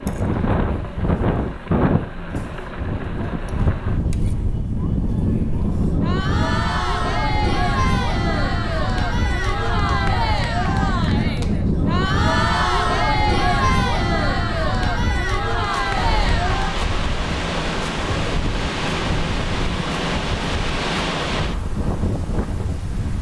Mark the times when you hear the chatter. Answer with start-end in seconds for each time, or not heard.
0.0-16.8.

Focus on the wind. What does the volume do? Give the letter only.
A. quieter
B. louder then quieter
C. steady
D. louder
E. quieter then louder
C.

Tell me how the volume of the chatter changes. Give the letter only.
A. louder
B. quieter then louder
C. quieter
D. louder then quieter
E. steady
A.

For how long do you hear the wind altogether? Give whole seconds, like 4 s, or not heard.
23 s.